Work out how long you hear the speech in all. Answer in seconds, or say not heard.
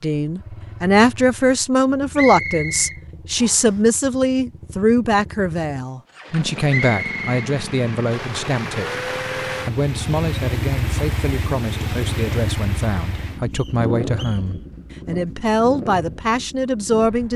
17 s.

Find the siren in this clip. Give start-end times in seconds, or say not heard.
not heard.